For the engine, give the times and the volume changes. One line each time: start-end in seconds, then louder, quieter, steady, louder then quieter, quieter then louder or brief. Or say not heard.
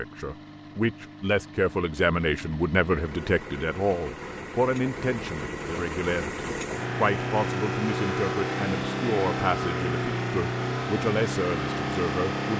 0.0-12.5 louder.